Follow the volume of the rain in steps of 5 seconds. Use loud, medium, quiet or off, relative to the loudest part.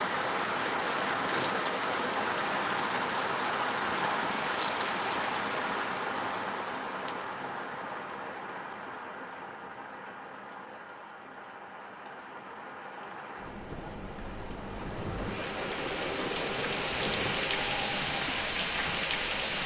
loud, medium, quiet, loud.